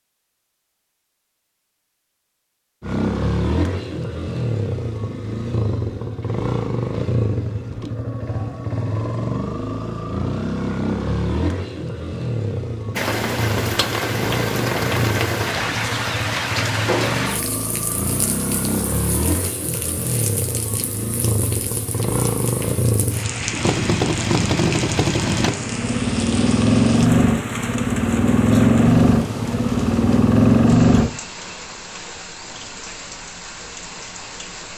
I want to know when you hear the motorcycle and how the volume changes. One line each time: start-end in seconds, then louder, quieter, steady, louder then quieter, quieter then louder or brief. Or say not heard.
2.8-31.1 louder.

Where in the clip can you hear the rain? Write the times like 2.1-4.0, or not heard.
12.9-34.7.